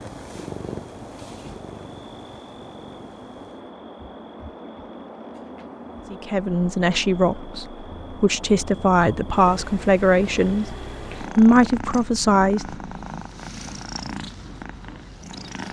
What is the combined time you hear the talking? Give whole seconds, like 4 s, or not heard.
7 s.